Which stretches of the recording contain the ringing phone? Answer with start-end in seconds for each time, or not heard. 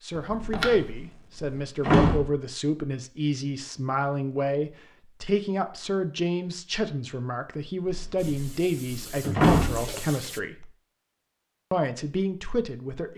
0.1-0.9.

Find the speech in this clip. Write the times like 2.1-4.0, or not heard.
0.0-10.7, 11.7-13.1.